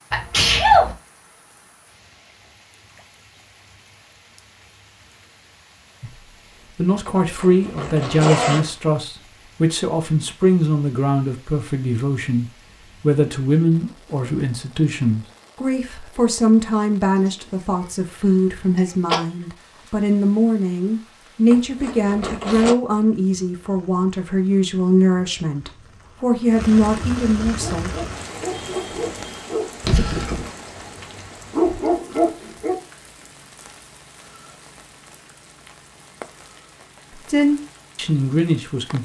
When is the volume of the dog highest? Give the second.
32 s.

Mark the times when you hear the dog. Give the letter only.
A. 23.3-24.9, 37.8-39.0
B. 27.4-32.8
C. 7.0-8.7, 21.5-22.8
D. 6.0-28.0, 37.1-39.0
B.